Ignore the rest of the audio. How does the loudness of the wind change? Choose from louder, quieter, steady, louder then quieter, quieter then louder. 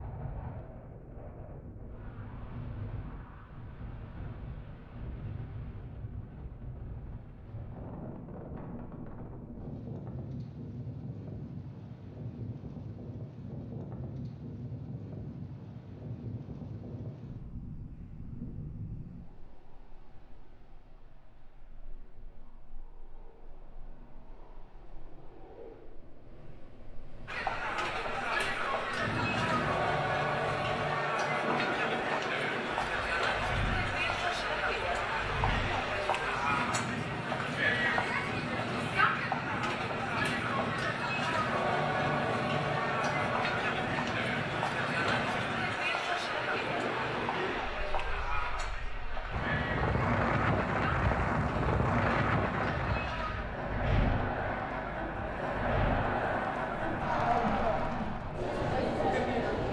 louder.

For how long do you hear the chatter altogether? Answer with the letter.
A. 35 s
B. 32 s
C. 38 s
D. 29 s
B.